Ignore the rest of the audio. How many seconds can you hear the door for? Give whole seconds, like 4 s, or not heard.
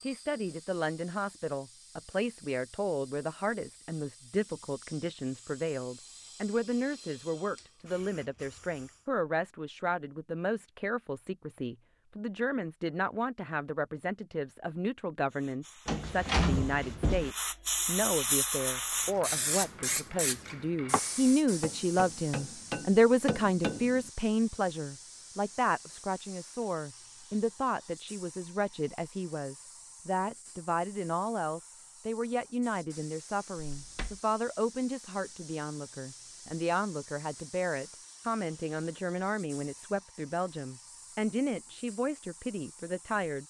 2 s.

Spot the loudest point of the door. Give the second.
16 s.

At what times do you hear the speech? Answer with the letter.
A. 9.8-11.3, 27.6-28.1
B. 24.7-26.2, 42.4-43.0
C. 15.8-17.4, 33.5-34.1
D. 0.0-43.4
D.